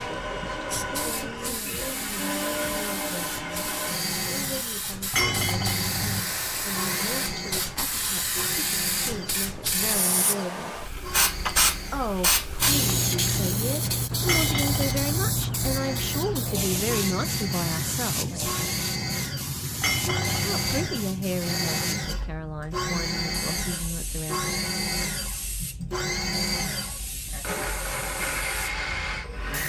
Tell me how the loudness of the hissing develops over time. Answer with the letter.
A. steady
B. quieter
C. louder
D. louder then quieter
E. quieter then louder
D.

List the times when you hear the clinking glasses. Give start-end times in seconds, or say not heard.
5.1-6.2, 14.2-15.3, 19.8-20.9.